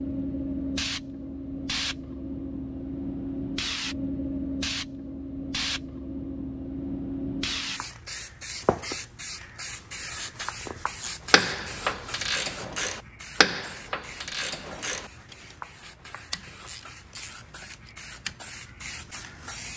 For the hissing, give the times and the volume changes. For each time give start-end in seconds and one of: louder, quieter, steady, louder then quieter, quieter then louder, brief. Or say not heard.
0.0-19.7 quieter.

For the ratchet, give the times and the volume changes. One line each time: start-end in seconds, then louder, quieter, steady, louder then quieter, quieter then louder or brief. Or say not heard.
11.0-18.4 quieter.